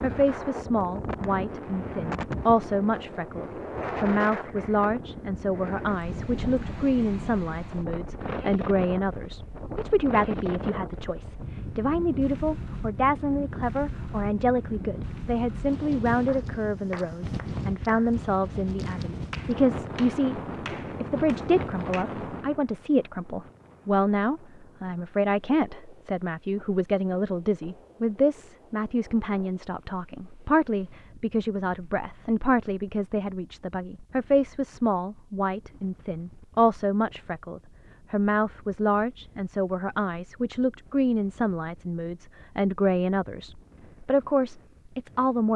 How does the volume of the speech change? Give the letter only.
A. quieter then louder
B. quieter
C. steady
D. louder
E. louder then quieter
C.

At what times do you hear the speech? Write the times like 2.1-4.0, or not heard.
0.0-20.4, 21.0-45.5.